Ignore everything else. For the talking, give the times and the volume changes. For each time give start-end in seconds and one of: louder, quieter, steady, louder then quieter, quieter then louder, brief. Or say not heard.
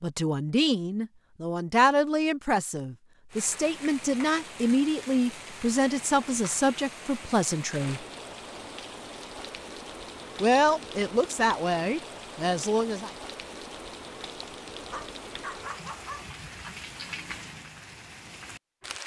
0.0-8.1 steady
10.4-13.1 brief.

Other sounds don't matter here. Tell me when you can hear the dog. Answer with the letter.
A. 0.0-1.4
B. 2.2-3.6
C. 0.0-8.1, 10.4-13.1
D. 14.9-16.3
D.